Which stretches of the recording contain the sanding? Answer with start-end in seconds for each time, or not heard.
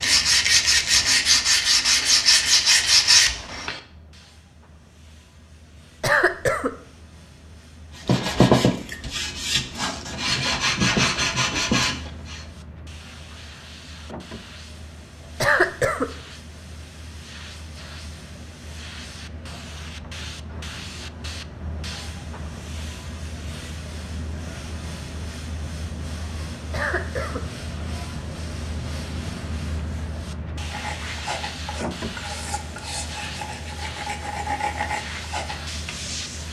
0.0-3.8, 8.0-12.4, 30.6-36.4.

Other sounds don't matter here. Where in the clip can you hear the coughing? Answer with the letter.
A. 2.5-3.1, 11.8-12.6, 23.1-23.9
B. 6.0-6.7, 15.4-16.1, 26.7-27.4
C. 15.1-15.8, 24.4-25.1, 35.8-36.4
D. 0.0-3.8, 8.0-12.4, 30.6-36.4
B.